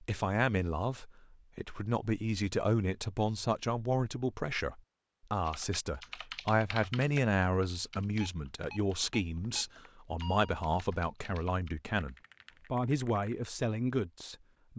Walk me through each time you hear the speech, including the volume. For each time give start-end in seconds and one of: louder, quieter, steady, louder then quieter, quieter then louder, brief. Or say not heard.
0.0-14.7 steady.